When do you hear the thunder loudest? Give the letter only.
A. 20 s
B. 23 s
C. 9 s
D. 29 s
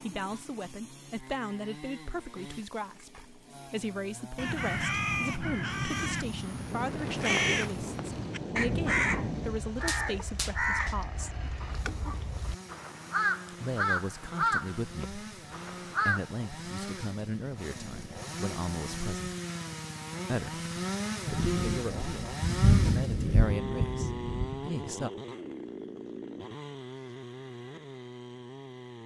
B.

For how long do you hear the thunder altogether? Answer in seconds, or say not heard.
7 s.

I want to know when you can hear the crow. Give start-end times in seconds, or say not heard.
4.3-16.2.